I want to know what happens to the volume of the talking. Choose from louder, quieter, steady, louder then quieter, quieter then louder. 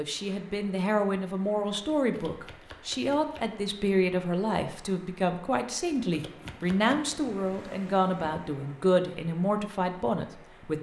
steady.